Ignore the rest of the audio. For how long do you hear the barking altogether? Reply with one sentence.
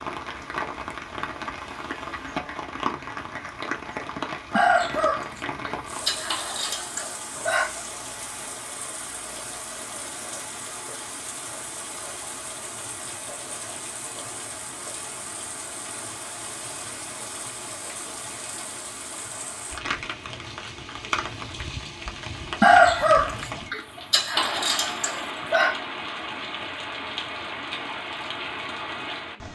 The barking can't be heard in this clip.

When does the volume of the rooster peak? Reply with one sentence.
The volume of the rooster peaks at 23 seconds.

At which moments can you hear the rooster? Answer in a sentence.
The rooster can be heard from 4.5 to 7.8 s and from 22.6 to 25.8 s.